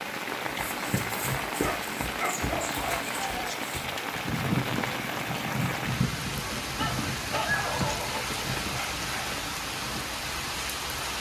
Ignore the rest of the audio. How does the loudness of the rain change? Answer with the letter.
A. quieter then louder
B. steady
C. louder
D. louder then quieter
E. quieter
B.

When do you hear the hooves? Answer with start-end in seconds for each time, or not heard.
0.7-10.2.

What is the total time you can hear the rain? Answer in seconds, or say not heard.
11 s.